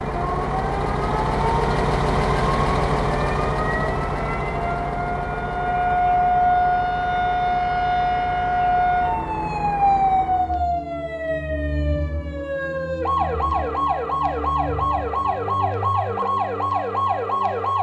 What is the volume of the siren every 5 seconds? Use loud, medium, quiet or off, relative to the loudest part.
medium, loud, loud, loud.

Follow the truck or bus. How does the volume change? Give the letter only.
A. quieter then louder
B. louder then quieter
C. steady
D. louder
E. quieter
E.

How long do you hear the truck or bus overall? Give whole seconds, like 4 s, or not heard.
11 s.